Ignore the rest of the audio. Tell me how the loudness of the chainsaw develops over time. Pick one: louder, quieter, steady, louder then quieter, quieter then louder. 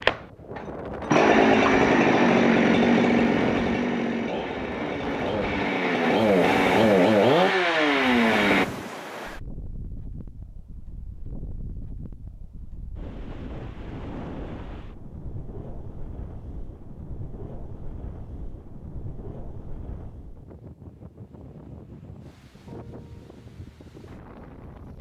quieter then louder.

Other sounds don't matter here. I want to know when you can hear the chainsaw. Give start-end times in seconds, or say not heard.
0.0-8.7.